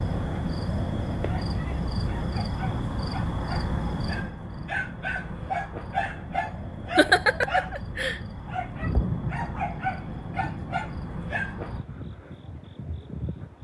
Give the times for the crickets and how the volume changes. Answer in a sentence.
The crickets can be heard from 0.0 to 13.5 s, getting quieter.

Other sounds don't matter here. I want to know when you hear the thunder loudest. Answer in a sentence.
The loudest moment of the thunder is at 9 seconds.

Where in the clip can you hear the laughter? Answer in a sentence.
You can hear the laughter from 7.0 to 8.2 s.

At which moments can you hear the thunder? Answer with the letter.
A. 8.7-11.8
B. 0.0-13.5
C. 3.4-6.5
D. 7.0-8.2
A.